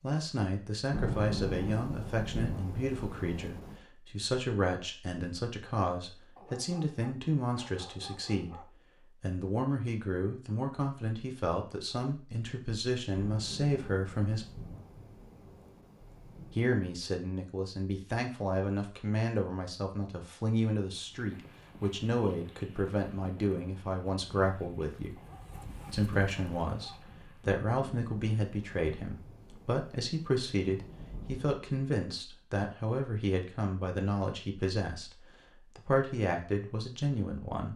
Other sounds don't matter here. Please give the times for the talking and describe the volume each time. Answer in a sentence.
You can hear the talking from 0.0 to 14.5 s, at a steady volume; from 16.6 to 25.1 s, at a steady volume; and from 25.9 to 37.7 s, at a steady volume.